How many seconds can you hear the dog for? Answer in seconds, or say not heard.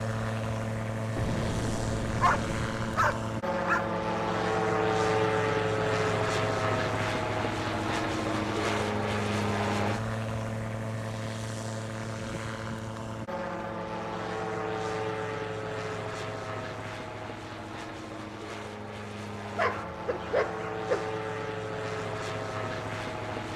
3 s.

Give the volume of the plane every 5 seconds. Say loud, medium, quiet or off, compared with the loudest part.
loud, loud, medium, medium, medium.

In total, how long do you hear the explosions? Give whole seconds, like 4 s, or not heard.
2 s.